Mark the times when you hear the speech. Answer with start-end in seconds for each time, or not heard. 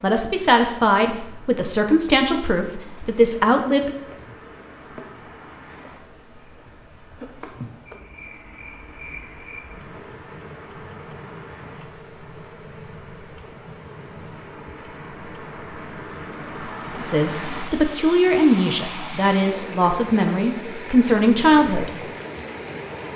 0.0-4.0, 17.0-22.0.